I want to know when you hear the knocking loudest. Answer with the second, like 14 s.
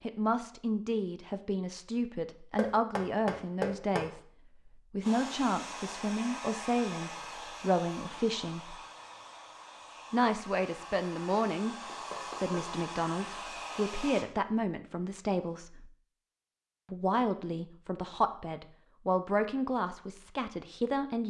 4 s.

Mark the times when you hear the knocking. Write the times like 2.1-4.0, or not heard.
2.5-4.1, 11.8-12.6.